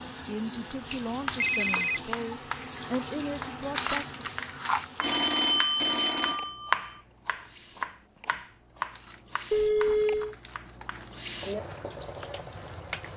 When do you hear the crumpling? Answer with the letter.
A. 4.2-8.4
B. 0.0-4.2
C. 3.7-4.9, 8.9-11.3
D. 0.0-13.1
C.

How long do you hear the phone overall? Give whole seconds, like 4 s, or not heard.
4 s.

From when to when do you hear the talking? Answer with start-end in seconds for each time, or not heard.
0.0-4.2.